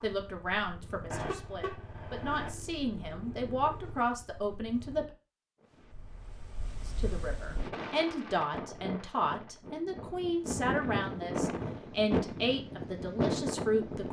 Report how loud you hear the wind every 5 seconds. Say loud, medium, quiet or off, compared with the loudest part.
off, medium, loud.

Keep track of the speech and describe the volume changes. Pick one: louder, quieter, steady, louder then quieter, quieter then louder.
steady.